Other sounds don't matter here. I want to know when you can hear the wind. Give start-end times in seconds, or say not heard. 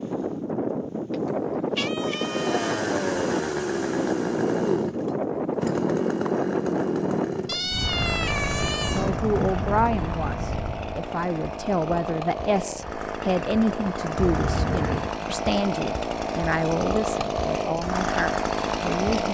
0.0-11.0.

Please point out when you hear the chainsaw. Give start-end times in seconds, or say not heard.
2.0-19.3.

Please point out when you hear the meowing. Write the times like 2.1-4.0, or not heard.
1.8-2.9, 7.5-9.1, 14.2-15.2.